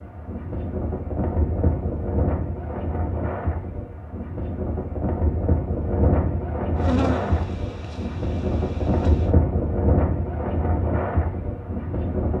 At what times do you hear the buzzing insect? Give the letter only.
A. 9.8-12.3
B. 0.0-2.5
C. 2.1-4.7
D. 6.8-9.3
D.